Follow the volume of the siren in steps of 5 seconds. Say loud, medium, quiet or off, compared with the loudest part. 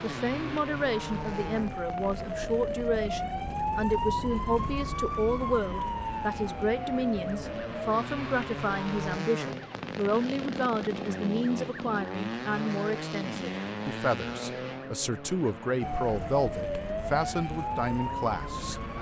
loud, loud, off, loud.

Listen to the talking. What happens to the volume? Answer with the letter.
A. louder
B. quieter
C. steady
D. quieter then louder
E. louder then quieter
C.